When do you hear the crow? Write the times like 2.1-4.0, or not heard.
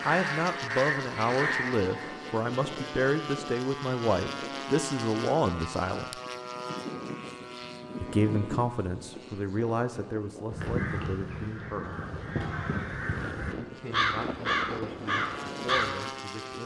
0.0-2.1, 10.5-15.9.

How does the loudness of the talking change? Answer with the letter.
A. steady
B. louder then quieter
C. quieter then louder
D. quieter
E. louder
D.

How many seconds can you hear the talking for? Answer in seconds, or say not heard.
13 s.